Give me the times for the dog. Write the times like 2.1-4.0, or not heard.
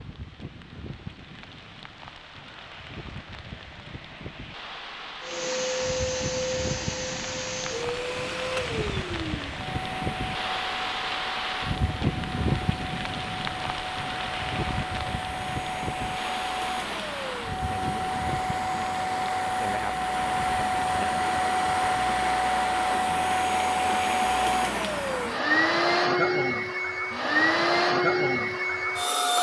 not heard.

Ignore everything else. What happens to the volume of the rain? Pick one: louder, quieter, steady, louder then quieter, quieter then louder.
louder then quieter.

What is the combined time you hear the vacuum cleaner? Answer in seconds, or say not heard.
24 s.